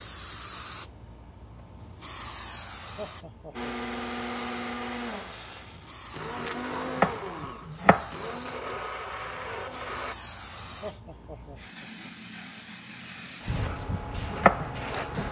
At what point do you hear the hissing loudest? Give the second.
15 s.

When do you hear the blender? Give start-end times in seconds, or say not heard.
3.5-10.2.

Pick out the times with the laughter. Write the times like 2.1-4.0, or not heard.
3.0-4.0, 10.8-12.1.